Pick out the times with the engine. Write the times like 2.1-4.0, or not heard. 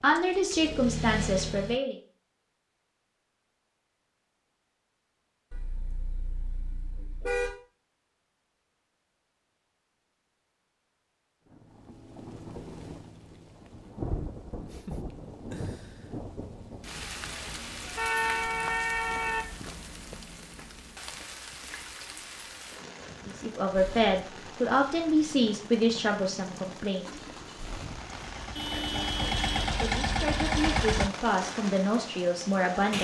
0.0-1.8, 23.7-31.1.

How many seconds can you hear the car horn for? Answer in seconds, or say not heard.
5 s.